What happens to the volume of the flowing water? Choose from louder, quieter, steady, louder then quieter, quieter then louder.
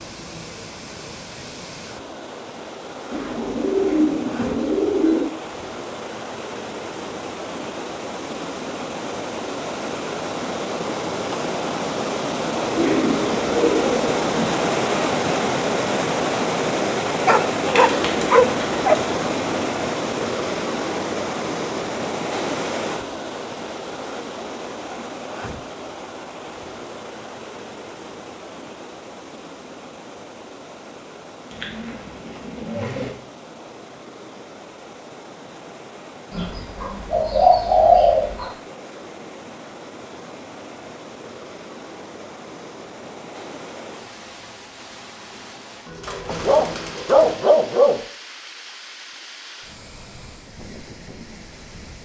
louder then quieter.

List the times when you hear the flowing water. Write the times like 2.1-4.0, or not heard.
0.0-51.9.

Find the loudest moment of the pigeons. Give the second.
38 s.